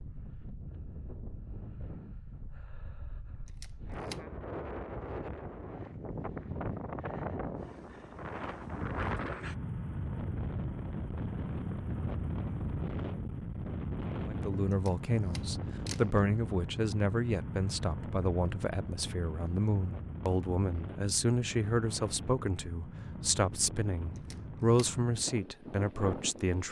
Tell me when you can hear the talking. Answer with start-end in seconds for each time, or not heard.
14.2-26.6.